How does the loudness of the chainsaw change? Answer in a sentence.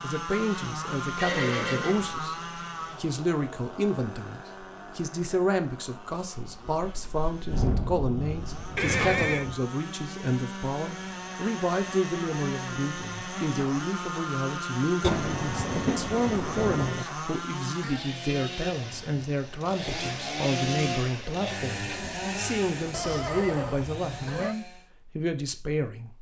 The volume of the chainsaw goes down, then up.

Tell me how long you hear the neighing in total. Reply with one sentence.
You can hear the neighing for 3 seconds altogether.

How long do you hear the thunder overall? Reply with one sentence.
You can hear the thunder for 5 seconds altogether.